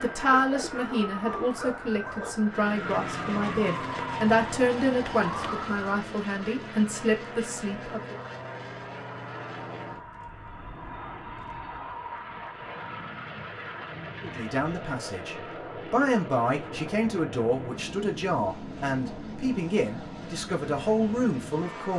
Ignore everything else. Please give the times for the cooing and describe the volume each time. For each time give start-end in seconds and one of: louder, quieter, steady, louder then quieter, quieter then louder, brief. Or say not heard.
not heard.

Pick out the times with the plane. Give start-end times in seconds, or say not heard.
2.4-21.9.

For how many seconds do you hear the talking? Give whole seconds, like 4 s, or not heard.
16 s.